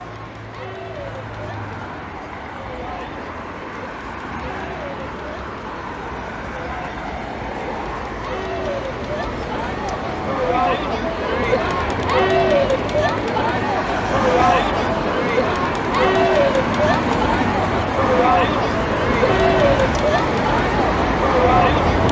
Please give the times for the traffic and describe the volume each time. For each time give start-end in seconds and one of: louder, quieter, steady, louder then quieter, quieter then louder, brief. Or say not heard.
0.0-22.0 louder.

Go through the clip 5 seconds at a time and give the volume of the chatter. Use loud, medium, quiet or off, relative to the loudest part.
quiet, medium, loud, loud, loud.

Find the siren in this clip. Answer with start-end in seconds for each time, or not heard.
not heard.